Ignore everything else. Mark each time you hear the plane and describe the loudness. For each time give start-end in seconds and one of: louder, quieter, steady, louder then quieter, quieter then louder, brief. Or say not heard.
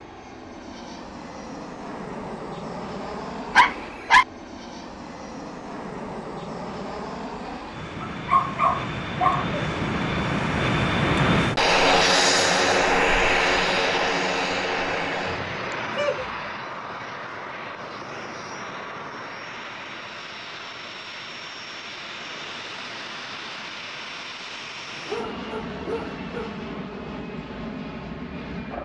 0.0-28.7 louder then quieter.